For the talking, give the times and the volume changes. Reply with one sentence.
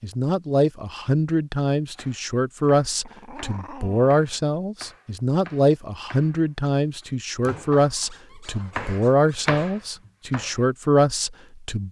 You can hear the talking from 0.0 to 11.8 s, at a steady volume.